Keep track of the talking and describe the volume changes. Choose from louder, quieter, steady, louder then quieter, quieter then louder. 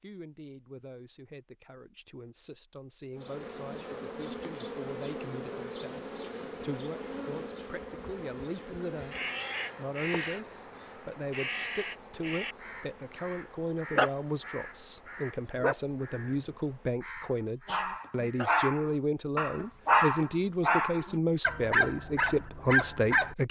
louder.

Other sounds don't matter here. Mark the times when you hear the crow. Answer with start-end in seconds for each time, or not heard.
9.0-18.5.